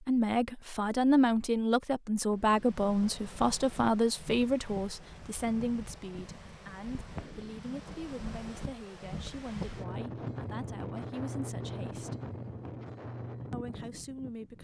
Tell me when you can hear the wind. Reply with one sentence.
The wind can be heard from 2.3 to 14.5 s.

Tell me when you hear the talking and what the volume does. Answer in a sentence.
You can hear the talking from 0.1 to 12.2 s, getting quieter; and briefly from 13.5 to 14.5 s.